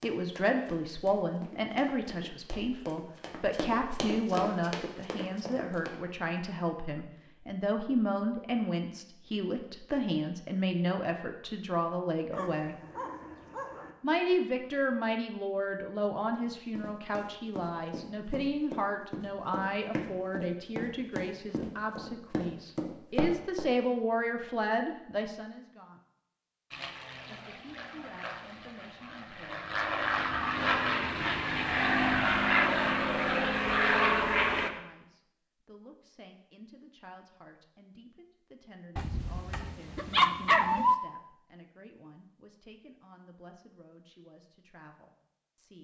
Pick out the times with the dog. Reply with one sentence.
The dog can be heard from 12.3 to 13.9 s and from 39.0 to 41.0 s.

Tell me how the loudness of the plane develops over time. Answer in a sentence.
The volume of the plane goes up.